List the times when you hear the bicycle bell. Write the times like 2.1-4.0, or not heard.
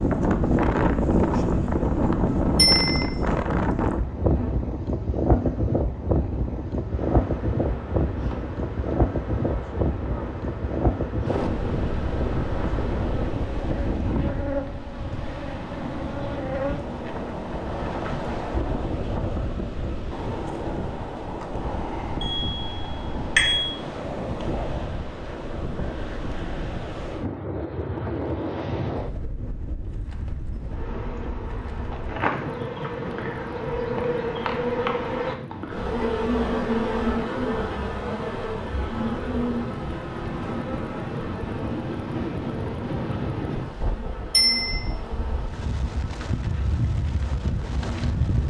2.5-3.0, 22.2-23.7, 44.3-44.8.